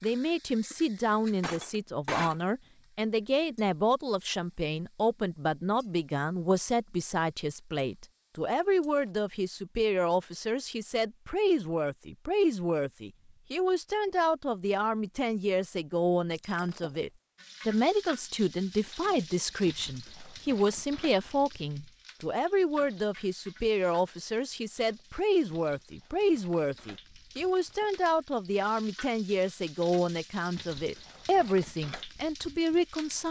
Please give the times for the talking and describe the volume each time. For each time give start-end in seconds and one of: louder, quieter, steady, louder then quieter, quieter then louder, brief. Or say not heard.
0.0-33.2 steady.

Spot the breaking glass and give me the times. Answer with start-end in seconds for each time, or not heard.
1.4-2.5, 16.4-17.0, 27.4-27.9.